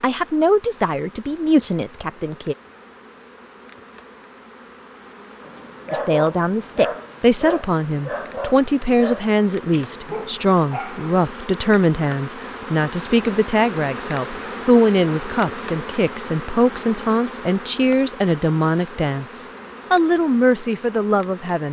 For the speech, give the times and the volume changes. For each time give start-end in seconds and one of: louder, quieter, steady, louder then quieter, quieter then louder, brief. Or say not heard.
0.0-2.5 brief
5.9-21.6 steady.